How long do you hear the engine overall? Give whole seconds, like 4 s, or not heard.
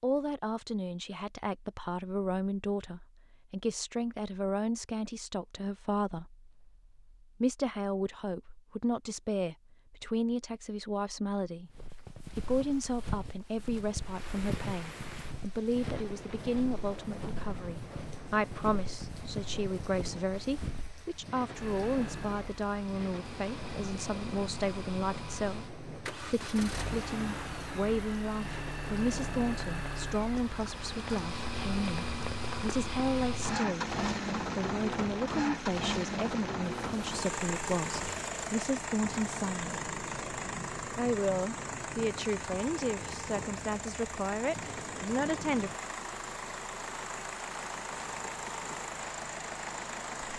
29 s.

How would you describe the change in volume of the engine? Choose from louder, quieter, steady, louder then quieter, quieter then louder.
louder then quieter.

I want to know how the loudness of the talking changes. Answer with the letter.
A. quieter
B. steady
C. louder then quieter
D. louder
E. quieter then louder
B.